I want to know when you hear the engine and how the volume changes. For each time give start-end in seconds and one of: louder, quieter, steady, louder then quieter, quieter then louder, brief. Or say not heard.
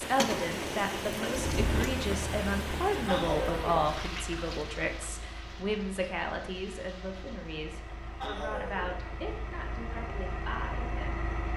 0.0-11.5 quieter then louder.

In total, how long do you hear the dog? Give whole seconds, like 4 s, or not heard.
2 s.